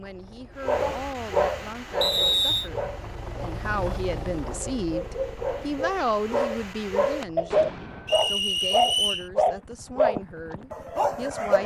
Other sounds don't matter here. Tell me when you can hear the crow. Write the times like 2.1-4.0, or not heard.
not heard.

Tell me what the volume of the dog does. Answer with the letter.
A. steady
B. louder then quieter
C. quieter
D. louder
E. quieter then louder
E.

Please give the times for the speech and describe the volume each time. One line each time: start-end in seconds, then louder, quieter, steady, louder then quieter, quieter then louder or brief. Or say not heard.
0.0-11.6 louder then quieter.